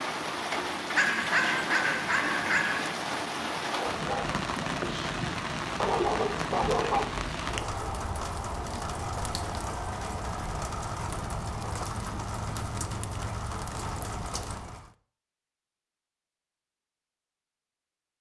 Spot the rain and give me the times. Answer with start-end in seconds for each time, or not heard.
0.0-14.9.